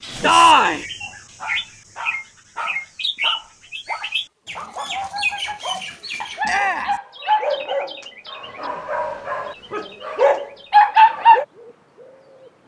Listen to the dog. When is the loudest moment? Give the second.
11 s.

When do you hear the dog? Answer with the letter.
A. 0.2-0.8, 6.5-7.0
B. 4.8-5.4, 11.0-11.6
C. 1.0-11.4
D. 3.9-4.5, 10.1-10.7
C.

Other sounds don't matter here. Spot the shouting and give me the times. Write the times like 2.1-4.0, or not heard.
0.2-0.8, 6.5-7.0.